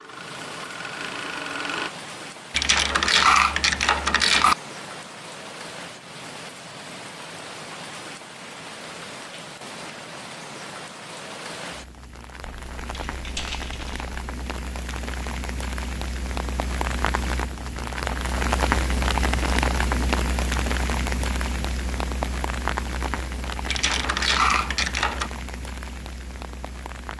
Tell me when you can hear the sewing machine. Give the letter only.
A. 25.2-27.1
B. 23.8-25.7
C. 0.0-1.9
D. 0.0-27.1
C.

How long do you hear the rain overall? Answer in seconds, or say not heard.
27 s.